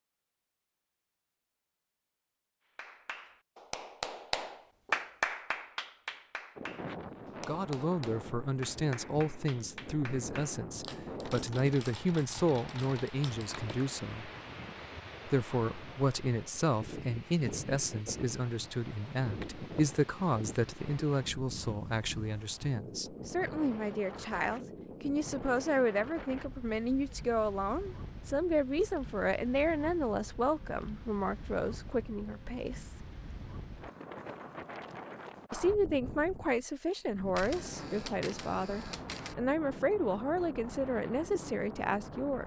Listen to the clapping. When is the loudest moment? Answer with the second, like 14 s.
5 s.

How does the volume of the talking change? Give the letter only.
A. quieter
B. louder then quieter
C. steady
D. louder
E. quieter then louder
C.